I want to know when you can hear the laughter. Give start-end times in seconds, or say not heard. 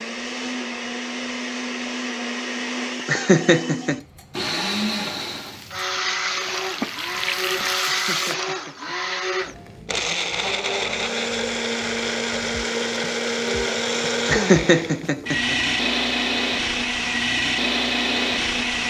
3.0-4.0, 7.8-8.9, 14.2-15.6.